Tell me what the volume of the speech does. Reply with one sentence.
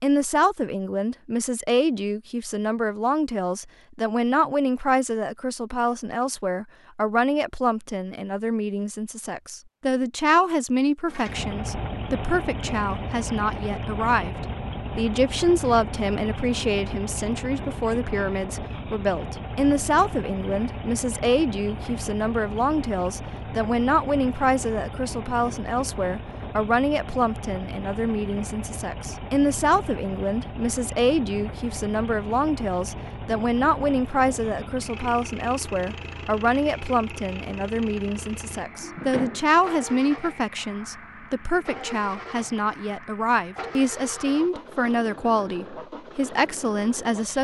The volume of the speech stays about the same.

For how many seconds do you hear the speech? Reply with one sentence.
You can hear the speech for 47 seconds altogether.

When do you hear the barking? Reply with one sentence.
You can't hear the barking here.